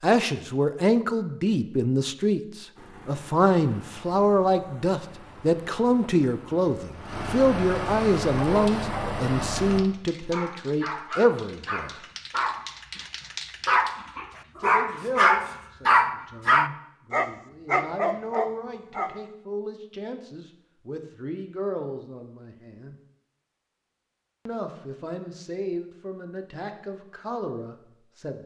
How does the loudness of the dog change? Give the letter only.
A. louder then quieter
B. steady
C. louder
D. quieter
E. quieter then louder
A.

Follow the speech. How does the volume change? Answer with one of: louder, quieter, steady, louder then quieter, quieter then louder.
quieter.